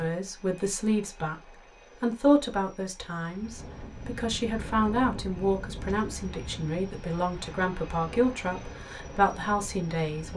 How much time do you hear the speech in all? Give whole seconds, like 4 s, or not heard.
10 s.